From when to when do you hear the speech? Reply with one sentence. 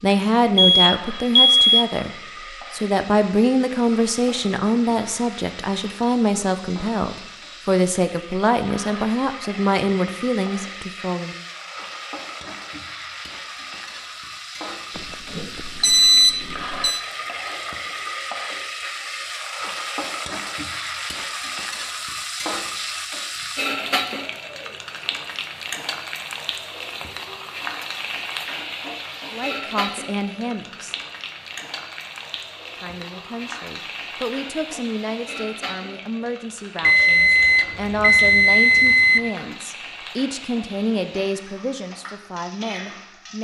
You can hear the speech from 0.0 to 2.1 s, from 2.7 to 11.3 s, from 29.3 to 30.9 s and from 32.8 to 43.4 s.